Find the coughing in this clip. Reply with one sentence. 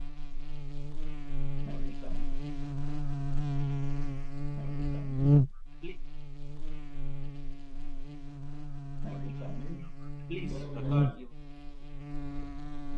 You can hear the coughing from 1.6 to 2.4 s, from 4.5 to 6.0 s and from 9.0 to 11.3 s.